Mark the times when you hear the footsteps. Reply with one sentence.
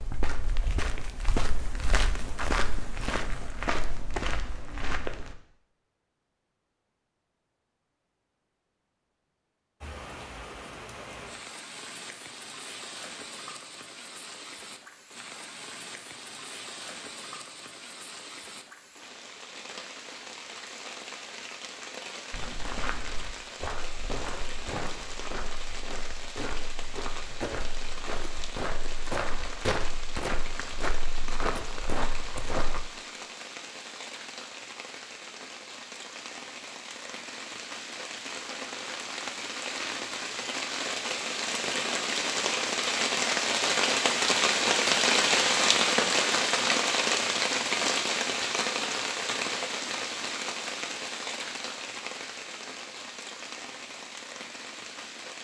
The footsteps can be heard from 0.0 to 5.3 s and from 22.3 to 32.9 s.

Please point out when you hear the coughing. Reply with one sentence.
The coughing can't be heard in this clip.